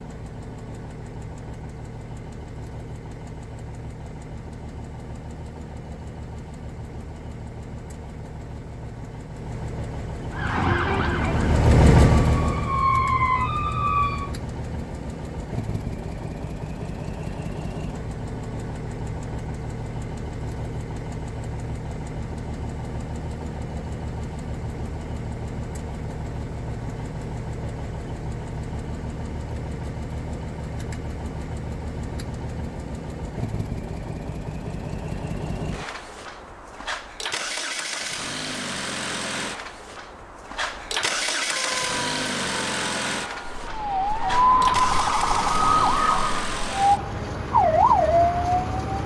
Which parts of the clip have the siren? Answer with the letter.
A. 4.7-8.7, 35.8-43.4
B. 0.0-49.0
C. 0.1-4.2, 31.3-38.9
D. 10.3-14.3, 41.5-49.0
D.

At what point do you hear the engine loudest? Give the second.
12 s.